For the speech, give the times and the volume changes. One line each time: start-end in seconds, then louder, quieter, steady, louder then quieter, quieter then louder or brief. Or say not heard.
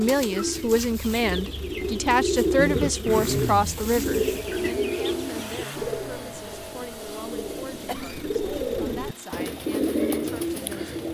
0.0-10.9 quieter.